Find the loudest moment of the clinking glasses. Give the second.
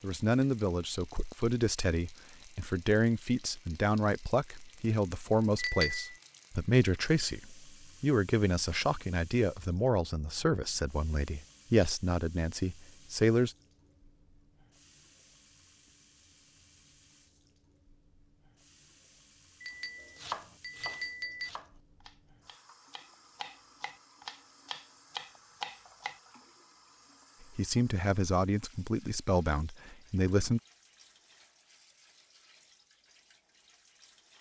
6 s.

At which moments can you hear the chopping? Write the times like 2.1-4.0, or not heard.
20.0-26.2.